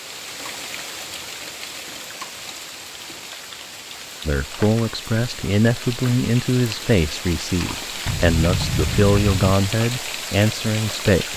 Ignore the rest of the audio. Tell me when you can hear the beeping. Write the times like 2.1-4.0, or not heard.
8.1-9.6.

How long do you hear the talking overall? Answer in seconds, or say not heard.
7 s.